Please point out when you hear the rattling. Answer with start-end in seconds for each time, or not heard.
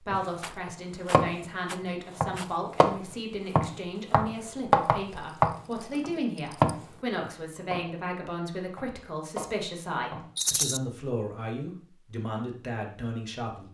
0.4-2.5, 5.5-6.8, 10.3-10.8.